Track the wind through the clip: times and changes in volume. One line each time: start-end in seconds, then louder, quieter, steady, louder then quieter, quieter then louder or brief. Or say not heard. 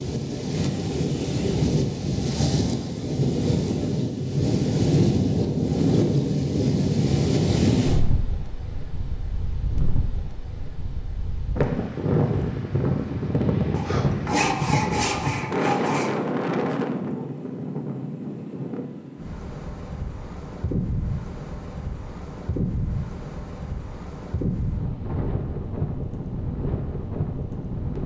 0.0-28.0 quieter.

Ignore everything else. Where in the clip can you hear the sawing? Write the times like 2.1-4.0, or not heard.
13.8-16.1.